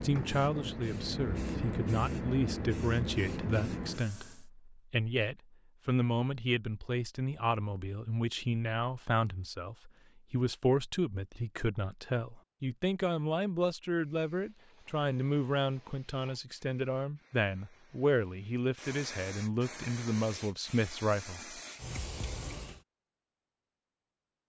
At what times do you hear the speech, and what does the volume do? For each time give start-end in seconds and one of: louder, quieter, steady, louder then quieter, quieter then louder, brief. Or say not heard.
0.0-21.6 steady.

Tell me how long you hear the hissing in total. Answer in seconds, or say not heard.
13 s.